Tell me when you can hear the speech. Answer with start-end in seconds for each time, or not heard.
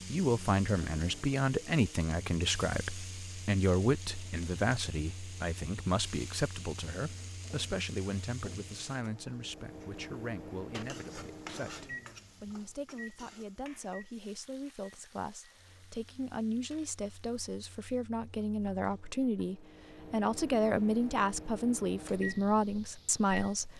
0.1-23.7.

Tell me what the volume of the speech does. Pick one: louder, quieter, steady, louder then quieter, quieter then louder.
quieter then louder.